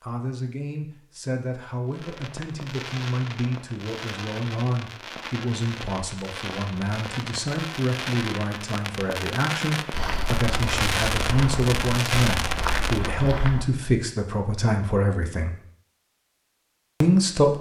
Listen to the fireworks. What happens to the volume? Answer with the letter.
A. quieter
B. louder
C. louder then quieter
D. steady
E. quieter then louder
B.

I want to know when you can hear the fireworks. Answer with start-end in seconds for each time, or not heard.
1.9-13.2.